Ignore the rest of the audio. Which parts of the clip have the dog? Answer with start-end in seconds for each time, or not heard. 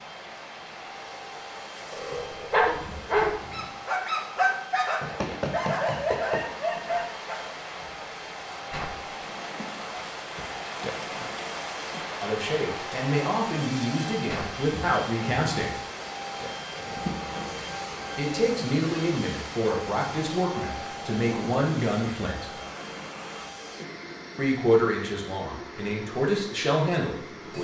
1.9-7.3.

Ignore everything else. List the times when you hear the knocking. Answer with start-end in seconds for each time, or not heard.
5.0-6.5.